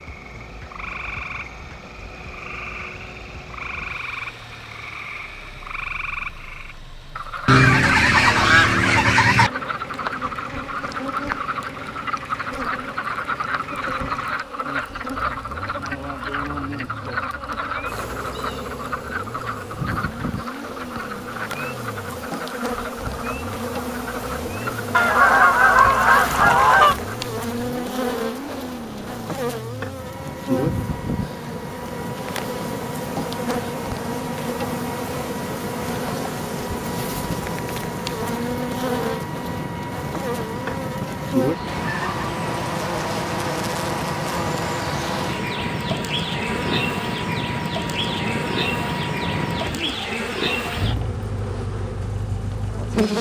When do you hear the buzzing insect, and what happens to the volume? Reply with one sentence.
You can hear the buzzing insect from 9.4 to 53.1 s, getting louder.